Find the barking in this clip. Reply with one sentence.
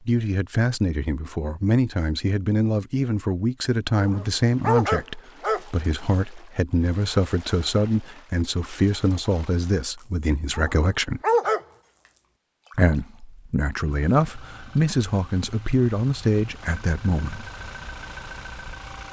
You can hear the barking from 4.0 to 5.6 s and from 10.5 to 11.6 s.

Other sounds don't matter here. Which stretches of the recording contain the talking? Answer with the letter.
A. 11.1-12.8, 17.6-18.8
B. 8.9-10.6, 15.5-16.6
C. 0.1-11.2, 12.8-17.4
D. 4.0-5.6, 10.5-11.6
C.